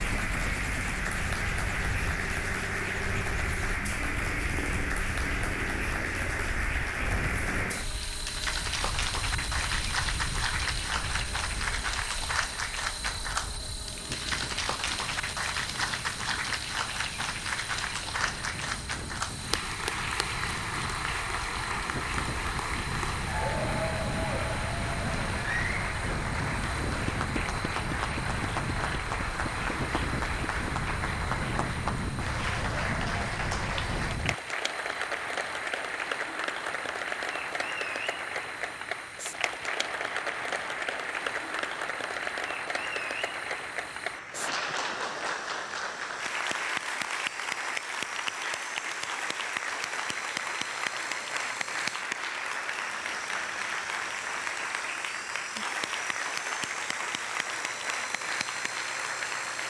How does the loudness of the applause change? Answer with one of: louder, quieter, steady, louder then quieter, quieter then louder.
steady.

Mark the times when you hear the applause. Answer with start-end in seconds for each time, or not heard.
0.0-59.6.